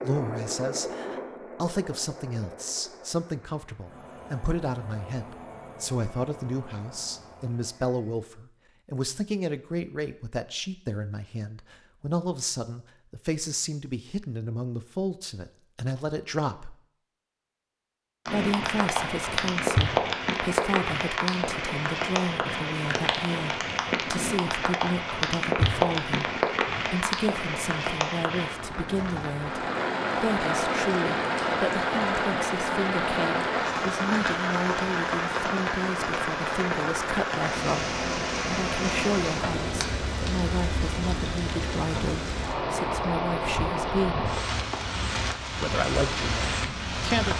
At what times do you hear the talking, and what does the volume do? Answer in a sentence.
The talking can be heard from 0.0 to 16.8 s, at a steady volume; from 18.2 to 44.3 s, at a steady volume; and briefly from 45.6 to 47.3 s.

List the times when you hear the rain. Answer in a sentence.
The rain can be heard from 18.2 to 47.3 s.